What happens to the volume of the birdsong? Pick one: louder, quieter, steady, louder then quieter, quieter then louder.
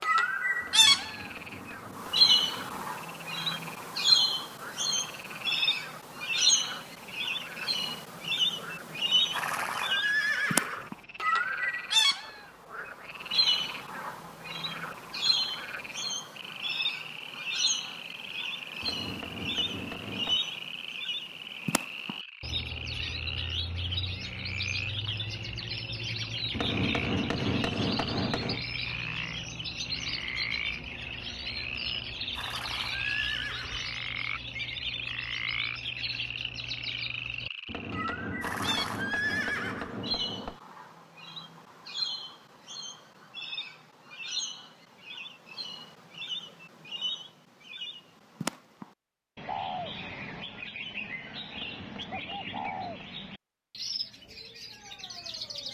quieter.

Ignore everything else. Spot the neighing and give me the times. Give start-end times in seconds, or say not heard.
9.3-10.9, 32.4-34.0, 38.4-40.0.